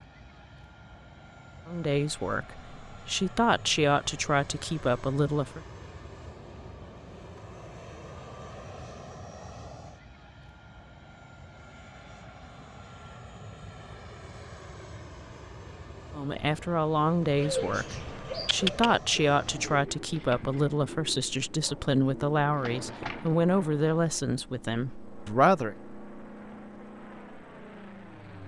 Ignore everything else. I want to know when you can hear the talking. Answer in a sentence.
The talking can be heard from 1.6 to 5.6 s and from 16.1 to 25.8 s.